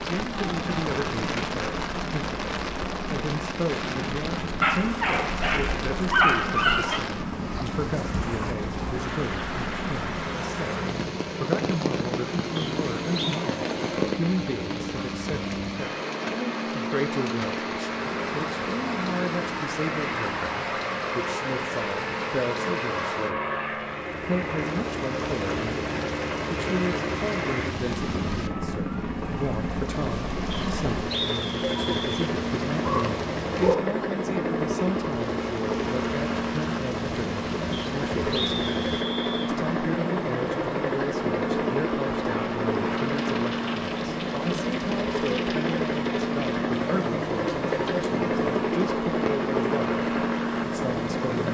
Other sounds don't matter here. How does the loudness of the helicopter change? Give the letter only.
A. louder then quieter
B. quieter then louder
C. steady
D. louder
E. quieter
D.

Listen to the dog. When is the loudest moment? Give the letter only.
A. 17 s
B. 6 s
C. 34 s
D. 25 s
B.